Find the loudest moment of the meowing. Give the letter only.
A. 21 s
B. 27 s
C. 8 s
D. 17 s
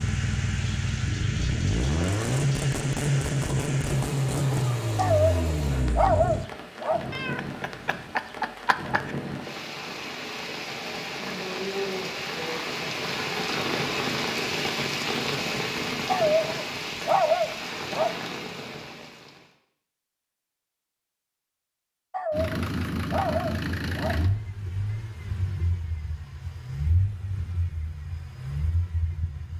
C.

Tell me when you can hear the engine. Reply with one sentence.
The engine can be heard from 0.0 to 6.5 s and from 22.3 to 29.5 s.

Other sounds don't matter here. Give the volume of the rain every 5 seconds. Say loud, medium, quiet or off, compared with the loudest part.
medium, medium, loud, loud, off, off.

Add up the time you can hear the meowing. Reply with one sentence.
You can hear the meowing for 2 seconds altogether.